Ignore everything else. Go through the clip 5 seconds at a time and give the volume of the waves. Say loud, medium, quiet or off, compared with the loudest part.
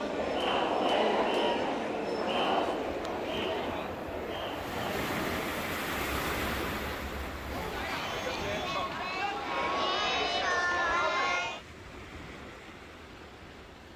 medium, loud, quiet.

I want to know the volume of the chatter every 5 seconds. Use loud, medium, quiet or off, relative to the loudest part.
loud, medium, loud.